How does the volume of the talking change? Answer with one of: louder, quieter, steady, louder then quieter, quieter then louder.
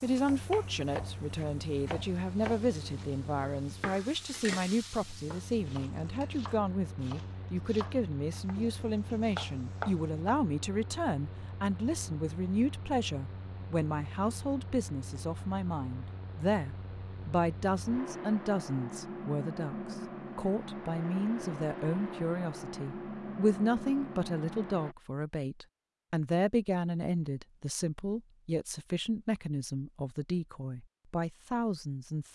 steady.